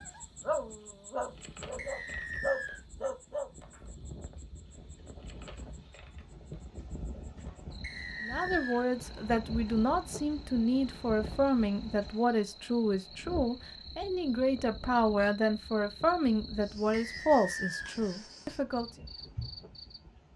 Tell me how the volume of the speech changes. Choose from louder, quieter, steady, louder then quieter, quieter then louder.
steady.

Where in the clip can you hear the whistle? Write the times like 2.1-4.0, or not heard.
1.8-2.8, 7.8-8.8, 16.9-17.9.